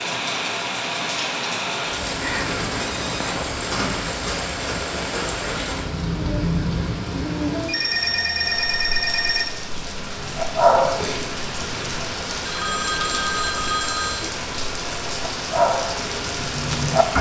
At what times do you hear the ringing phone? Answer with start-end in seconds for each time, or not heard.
2.2-3.5, 7.7-9.5, 12.4-14.3.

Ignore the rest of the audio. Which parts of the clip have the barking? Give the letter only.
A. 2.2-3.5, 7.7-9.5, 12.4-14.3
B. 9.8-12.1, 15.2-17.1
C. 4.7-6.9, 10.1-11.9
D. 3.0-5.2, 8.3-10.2
B.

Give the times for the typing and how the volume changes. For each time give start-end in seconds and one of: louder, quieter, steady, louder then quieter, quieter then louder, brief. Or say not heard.
not heard.